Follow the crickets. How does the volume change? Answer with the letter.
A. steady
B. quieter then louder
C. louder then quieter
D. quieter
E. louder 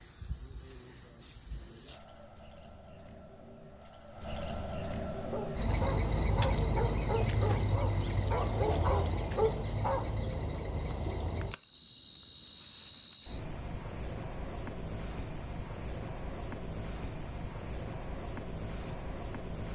C.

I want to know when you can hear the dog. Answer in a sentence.
You can hear the dog from 5.2 to 10.2 s.